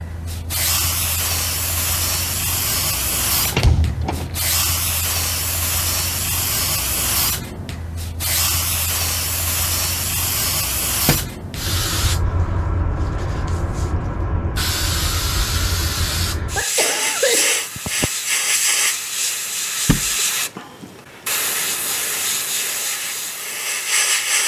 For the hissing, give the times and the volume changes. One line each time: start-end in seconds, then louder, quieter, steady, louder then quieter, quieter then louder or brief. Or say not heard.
0.0-24.4 steady.